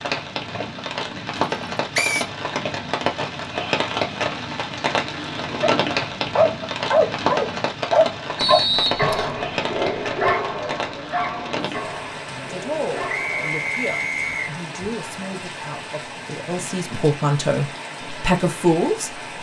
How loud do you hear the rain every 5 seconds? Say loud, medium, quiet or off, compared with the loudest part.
loud, loud, medium, medium.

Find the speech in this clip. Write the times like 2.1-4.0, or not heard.
11.7-19.1.